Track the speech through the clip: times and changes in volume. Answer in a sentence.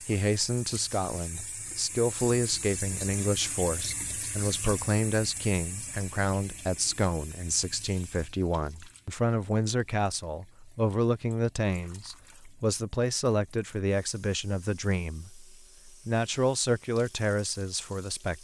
The speech can be heard from 0.1 to 18.3 s, at a steady volume.